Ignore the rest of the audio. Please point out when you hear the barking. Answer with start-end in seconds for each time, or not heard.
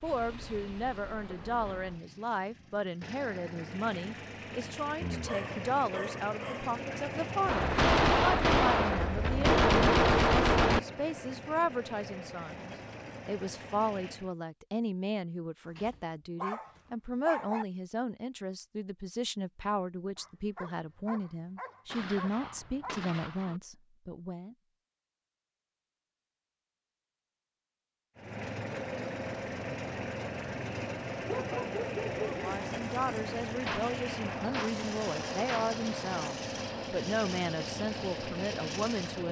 5.0-6.8, 15.8-17.6, 20.1-23.1, 31.1-32.5.